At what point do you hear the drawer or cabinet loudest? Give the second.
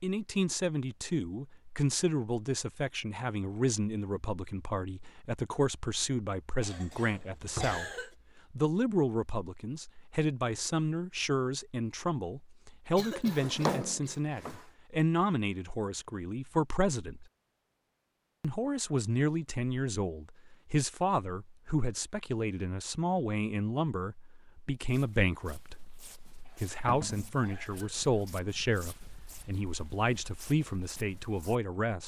14 s.